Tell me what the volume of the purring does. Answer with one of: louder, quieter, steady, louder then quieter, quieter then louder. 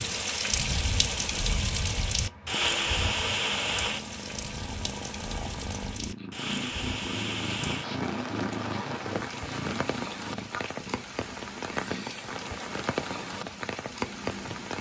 louder then quieter.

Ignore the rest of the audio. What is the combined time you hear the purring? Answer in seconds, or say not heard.
15 s.